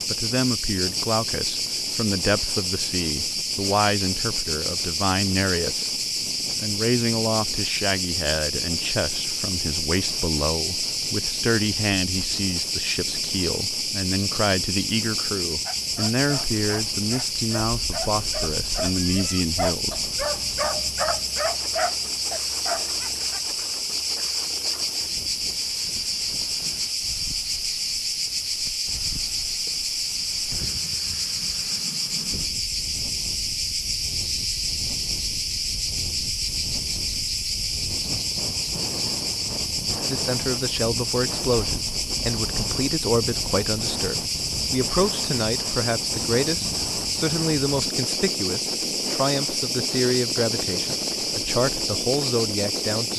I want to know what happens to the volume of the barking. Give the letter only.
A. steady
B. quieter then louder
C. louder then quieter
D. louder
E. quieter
D.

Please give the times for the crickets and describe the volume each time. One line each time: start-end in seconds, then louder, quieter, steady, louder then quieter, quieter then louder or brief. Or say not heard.
0.0-53.1 steady.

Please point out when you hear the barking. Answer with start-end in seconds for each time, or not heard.
15.7-23.4.